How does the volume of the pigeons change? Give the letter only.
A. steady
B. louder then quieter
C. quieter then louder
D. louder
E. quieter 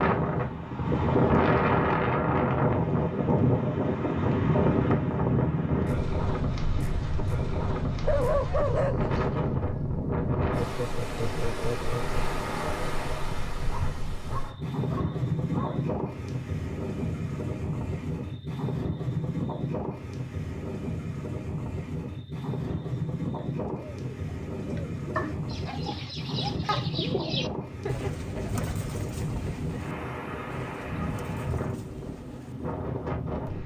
B.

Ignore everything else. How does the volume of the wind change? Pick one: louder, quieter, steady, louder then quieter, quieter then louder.
quieter.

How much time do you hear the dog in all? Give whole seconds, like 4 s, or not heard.
5 s.